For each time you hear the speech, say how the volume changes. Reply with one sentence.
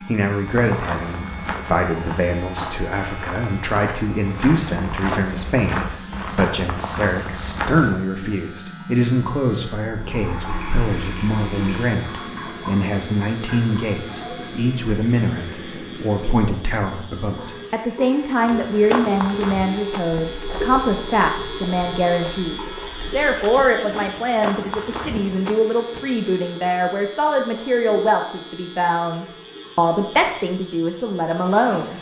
The speech can be heard from 0.0 to 31.9 s, at a steady volume.